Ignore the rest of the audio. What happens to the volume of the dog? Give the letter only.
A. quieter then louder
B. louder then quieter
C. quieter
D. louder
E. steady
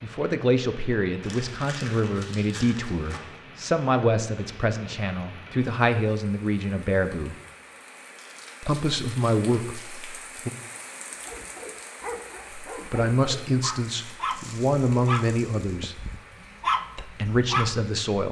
D.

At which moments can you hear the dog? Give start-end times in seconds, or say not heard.
11.1-17.9.